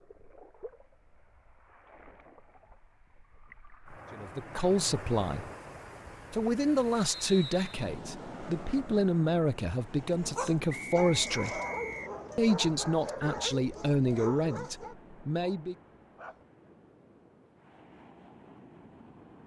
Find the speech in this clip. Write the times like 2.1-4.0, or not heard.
4.1-5.5, 6.3-11.6, 12.3-15.8.